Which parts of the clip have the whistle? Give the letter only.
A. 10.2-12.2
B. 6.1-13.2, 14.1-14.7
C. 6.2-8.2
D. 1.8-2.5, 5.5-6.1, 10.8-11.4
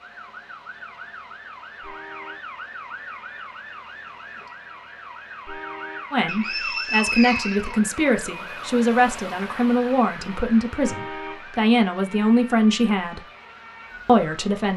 C.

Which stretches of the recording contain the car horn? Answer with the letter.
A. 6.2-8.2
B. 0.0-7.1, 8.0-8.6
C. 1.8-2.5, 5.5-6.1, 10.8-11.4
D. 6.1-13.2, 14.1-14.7
C.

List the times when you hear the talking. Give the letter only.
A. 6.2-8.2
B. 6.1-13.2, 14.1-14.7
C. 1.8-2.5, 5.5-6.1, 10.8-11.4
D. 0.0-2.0
B.